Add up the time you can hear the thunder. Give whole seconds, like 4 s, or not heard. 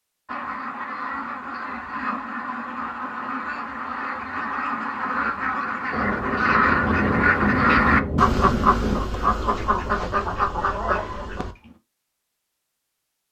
3 s.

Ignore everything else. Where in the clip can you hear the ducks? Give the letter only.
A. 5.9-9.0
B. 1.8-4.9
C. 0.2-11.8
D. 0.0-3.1
C.